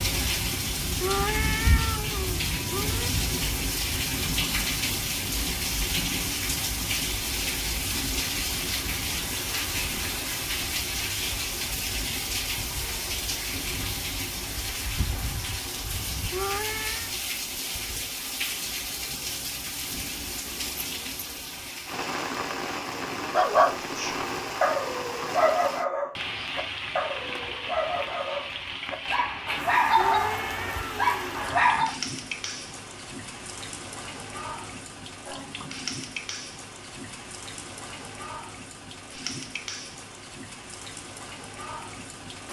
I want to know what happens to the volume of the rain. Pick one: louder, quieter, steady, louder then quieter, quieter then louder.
quieter.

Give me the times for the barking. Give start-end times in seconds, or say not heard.
23.3-31.9.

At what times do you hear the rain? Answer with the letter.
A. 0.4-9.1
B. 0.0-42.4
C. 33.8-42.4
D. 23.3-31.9
B.